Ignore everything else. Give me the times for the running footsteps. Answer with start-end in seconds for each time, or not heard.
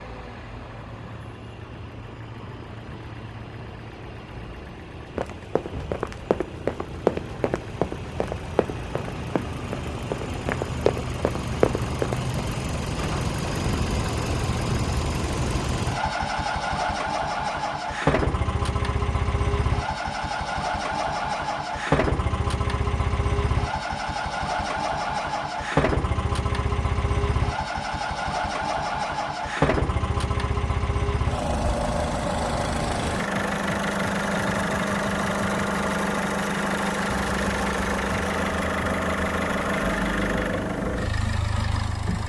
5.2-12.2.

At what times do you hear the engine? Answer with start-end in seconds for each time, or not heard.
0.0-42.2.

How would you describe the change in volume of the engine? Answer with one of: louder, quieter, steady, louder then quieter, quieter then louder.
louder.